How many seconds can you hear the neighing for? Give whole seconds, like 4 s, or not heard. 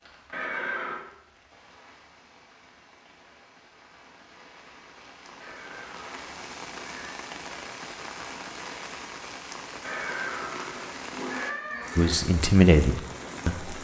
5 s.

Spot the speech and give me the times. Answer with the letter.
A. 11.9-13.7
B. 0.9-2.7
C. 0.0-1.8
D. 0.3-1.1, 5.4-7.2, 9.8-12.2
A.